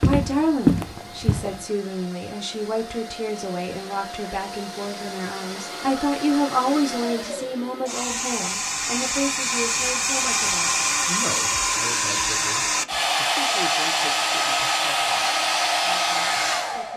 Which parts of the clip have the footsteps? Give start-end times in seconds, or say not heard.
0.0-1.6.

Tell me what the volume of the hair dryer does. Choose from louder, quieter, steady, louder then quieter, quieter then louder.
louder.